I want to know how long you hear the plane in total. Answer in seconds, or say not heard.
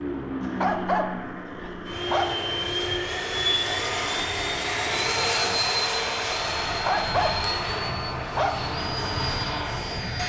10 s.